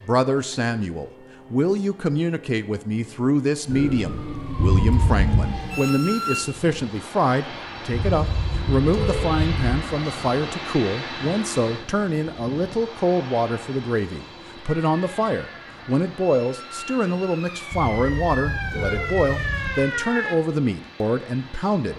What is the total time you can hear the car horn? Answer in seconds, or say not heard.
5 s.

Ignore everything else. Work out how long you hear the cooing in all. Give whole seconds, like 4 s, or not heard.
not heard.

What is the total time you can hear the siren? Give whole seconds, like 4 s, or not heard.
8 s.